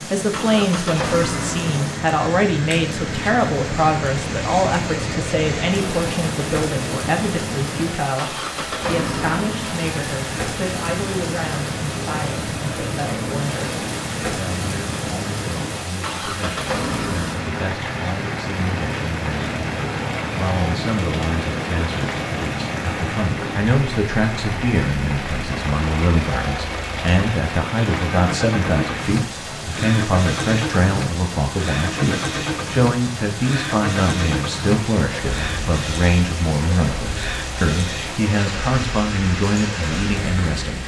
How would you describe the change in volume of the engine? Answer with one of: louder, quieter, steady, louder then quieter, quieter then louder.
steady.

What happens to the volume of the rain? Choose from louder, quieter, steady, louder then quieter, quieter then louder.
steady.